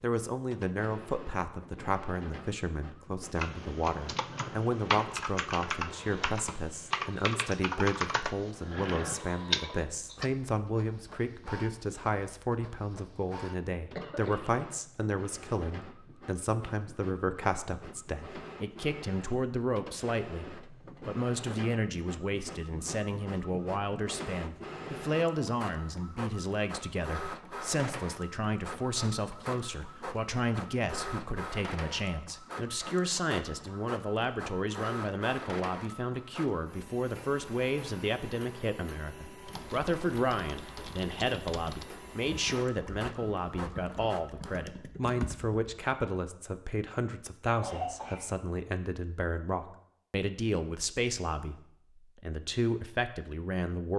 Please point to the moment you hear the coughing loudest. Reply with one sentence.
The loudest moment of the coughing is at 48 seconds.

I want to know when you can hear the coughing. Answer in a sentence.
The coughing can be heard from 13.9 to 14.5 s and from 47.6 to 48.3 s.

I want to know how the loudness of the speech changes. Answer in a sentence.
The loudness of the speech stays about the same.